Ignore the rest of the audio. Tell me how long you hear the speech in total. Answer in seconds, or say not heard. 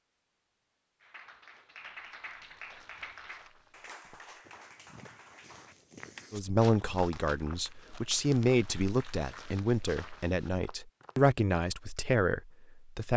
7 s.